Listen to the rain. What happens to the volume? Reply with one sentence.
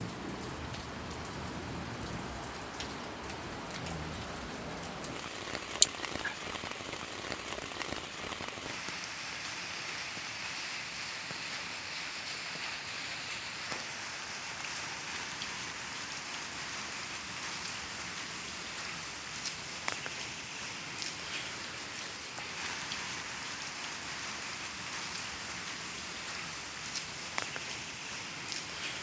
The loudness of the rain stays about the same.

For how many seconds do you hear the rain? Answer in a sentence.
The rain can be heard for 29 seconds in total.